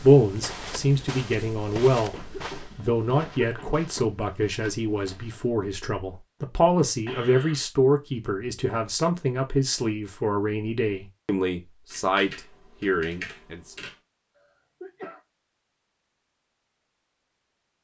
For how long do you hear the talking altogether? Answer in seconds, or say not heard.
14 s.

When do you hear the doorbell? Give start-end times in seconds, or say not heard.
not heard.